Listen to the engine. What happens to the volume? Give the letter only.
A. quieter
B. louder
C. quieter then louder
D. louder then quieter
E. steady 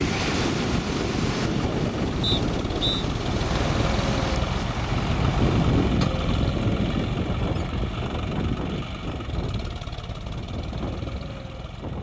D.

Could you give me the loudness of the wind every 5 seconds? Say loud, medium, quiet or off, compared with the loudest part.
loud, medium, medium.